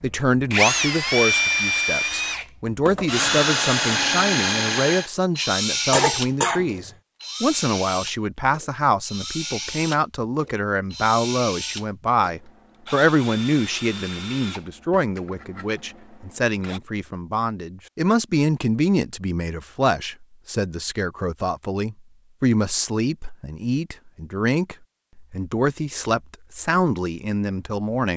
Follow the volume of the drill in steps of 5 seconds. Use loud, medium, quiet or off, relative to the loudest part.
loud, medium, quiet, quiet, off, off.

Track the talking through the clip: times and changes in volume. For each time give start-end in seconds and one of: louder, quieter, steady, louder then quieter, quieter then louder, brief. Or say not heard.
0.0-28.1 steady.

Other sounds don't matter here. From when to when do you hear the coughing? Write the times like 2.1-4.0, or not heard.
5.9-6.9.